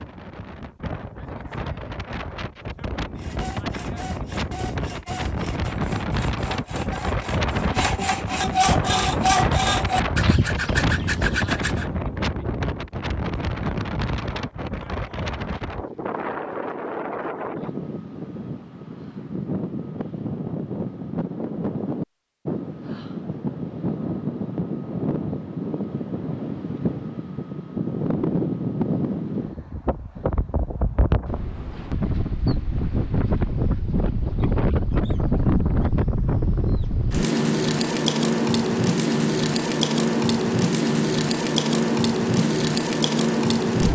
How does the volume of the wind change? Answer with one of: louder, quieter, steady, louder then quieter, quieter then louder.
louder.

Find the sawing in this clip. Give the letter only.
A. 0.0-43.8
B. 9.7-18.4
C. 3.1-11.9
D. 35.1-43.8
C.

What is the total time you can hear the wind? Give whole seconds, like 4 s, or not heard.
44 s.